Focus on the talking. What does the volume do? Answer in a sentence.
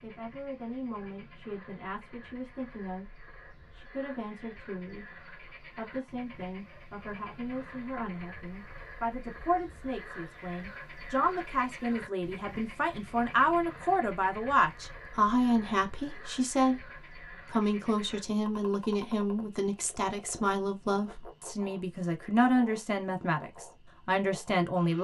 The loudness of the talking goes up.